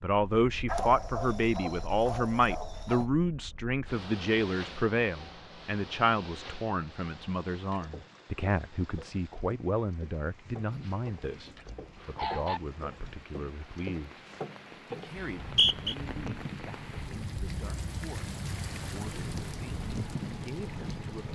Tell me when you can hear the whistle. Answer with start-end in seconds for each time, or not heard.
15.2-15.9.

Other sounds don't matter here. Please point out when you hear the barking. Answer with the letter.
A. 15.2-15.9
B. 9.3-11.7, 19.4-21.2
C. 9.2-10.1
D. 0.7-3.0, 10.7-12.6
D.